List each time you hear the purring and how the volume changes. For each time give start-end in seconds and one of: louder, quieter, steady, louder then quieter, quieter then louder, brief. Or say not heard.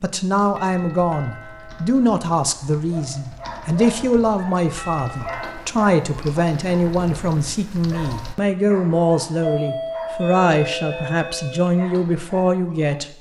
not heard.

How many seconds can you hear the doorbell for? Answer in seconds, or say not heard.
5 s.